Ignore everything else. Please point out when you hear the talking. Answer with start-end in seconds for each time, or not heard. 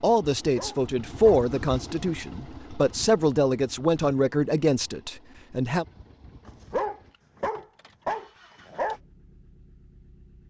0.0-5.8.